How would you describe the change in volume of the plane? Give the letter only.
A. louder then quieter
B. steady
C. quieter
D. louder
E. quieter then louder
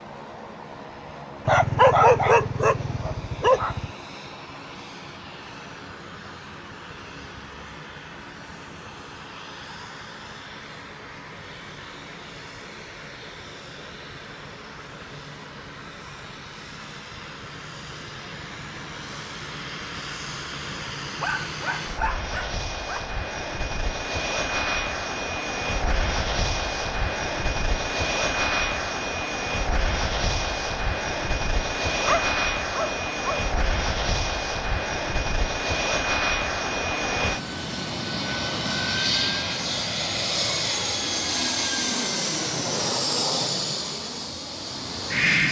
D.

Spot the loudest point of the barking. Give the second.
2 s.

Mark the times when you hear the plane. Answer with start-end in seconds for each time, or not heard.
0.0-45.4.